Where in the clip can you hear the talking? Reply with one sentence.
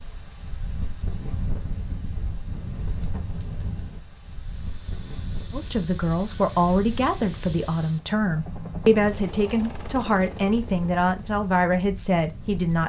The talking can be heard from 5.5 to 12.8 s.